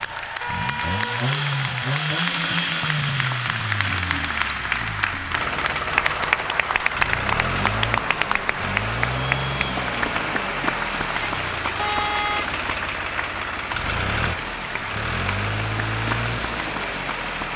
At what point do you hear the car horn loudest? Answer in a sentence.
The volume of the car horn peaks at 12 seconds.